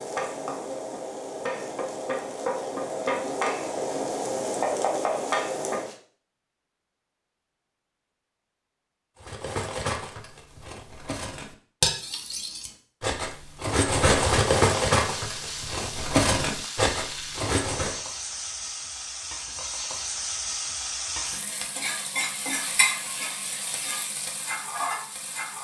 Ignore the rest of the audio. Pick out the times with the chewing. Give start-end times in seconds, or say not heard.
not heard.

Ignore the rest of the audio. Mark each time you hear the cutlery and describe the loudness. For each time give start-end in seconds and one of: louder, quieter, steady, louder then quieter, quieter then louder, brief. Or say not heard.
9.2-17.9 louder.